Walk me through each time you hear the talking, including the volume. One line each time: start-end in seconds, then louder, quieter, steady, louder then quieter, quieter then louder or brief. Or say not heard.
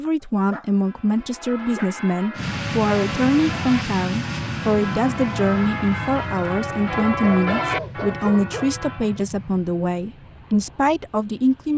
0.0-11.7 steady.